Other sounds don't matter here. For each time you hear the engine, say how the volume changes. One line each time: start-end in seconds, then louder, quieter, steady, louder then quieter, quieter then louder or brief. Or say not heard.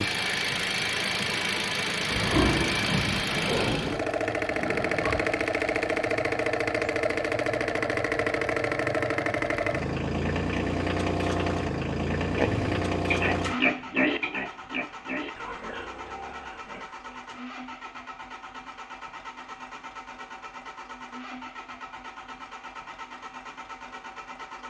0.0-24.6 quieter.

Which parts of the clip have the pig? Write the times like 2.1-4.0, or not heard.
2.1-5.5, 12.2-17.1.